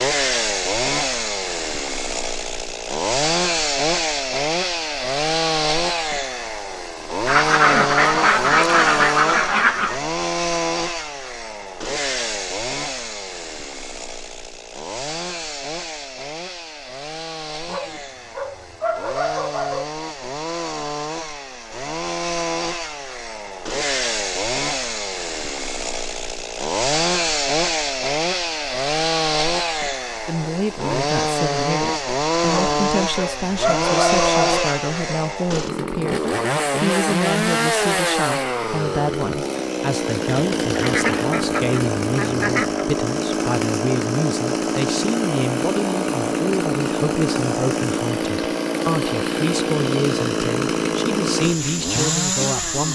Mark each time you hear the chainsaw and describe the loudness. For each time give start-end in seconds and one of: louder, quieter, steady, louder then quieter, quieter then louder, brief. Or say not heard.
0.0-52.9 quieter then louder.